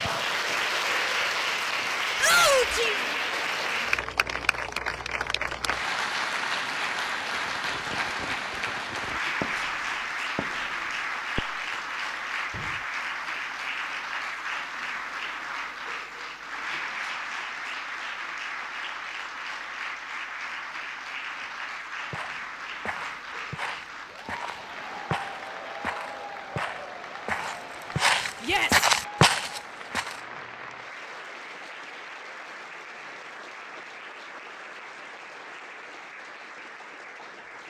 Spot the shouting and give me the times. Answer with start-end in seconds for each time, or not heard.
2.1-3.0, 28.4-28.9.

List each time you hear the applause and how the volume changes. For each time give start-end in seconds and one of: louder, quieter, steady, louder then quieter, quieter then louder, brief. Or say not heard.
0.0-37.6 quieter.